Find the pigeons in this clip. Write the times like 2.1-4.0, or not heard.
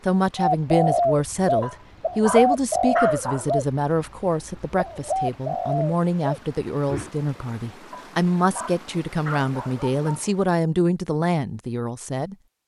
0.3-7.1.